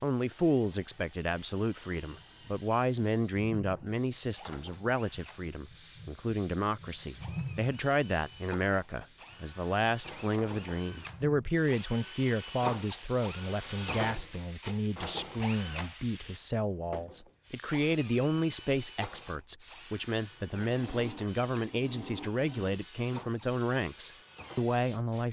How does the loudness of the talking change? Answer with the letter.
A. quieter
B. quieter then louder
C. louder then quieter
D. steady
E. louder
D.